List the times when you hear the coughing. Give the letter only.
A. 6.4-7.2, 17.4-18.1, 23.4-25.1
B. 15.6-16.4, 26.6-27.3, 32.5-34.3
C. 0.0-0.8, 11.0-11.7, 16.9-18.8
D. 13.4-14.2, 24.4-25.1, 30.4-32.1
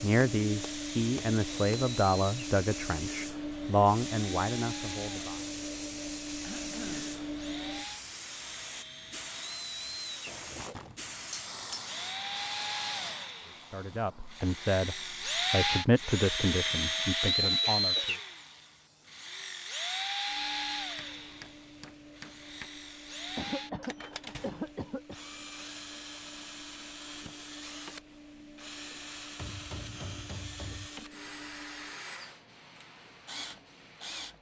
A.